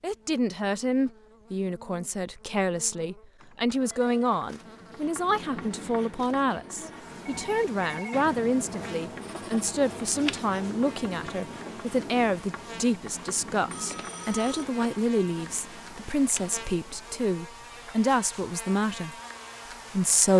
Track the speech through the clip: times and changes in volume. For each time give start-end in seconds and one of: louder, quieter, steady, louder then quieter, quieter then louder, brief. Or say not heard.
0.0-19.1 steady
19.9-20.3 brief.